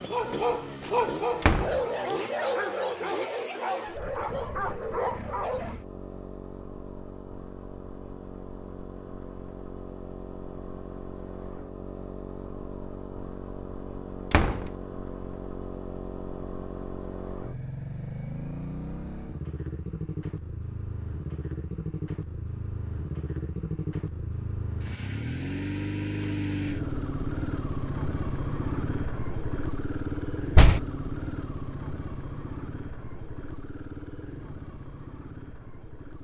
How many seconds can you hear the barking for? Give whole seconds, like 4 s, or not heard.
6 s.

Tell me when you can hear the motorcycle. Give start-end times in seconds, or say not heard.
0.0-36.1.